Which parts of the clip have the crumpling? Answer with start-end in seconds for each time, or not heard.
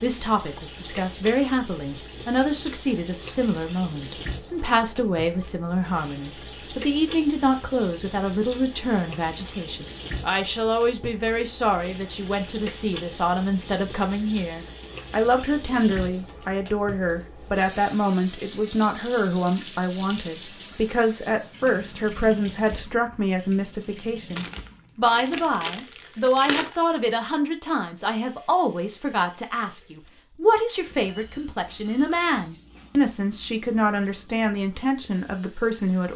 24.4-26.8.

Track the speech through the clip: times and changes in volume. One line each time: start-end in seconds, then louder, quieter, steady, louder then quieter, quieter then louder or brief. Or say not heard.
0.0-36.1 steady.